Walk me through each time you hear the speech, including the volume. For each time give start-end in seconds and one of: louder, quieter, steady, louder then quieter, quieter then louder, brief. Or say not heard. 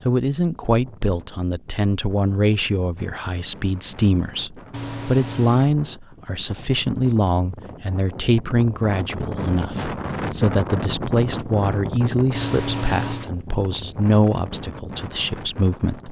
0.1-16.0 steady.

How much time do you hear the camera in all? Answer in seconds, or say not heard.
2 s.